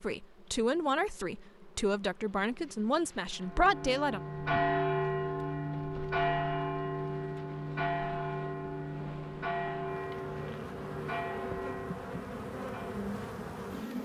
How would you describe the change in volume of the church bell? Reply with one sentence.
The volume of the church bell goes down.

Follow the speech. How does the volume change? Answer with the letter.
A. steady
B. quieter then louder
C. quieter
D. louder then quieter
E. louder
B.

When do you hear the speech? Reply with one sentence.
You can hear the speech from 0.0 to 4.2 s.